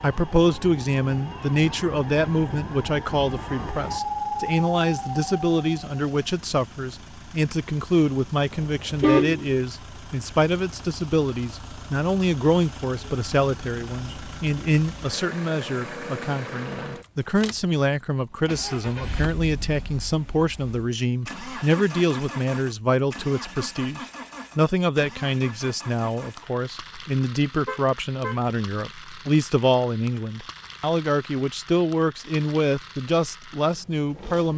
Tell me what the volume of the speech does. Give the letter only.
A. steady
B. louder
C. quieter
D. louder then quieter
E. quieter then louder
A.